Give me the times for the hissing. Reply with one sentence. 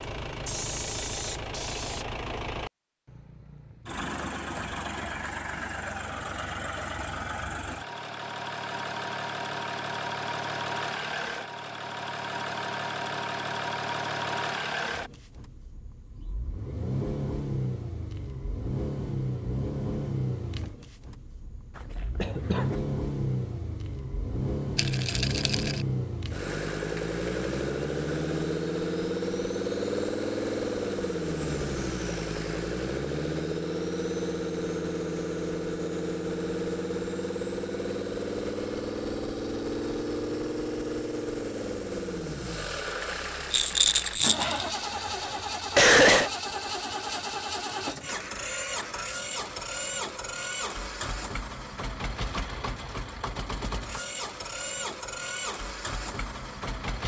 The hissing can be heard from 0.0 to 2.0 s.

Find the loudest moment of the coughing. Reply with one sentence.
The loudest moment of the coughing is at 46 seconds.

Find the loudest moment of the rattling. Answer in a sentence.
The loudest moment of the rattling is at 44 seconds.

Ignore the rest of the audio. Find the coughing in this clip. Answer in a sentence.
The coughing can be heard from 21.8 to 22.8 s and from 44.4 to 46.3 s.